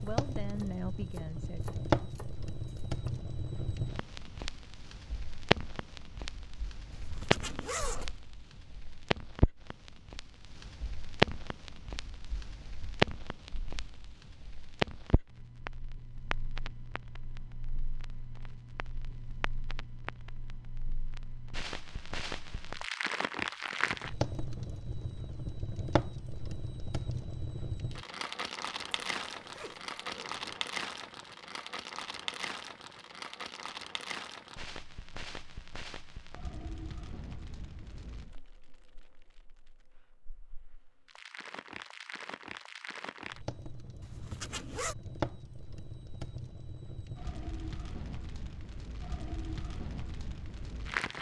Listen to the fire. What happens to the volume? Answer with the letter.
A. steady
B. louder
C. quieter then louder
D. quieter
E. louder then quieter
D.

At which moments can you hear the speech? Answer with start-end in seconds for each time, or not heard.
0.0-1.6.